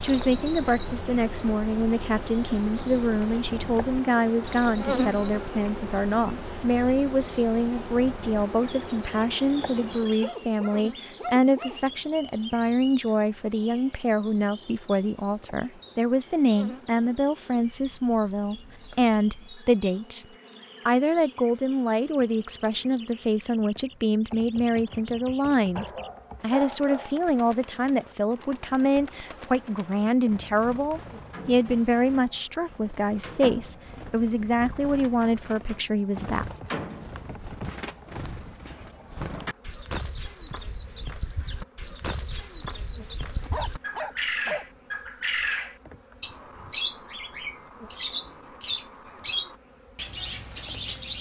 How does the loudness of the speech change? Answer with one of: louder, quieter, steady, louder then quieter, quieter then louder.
steady.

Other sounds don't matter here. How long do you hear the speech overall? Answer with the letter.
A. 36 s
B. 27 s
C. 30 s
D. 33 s
A.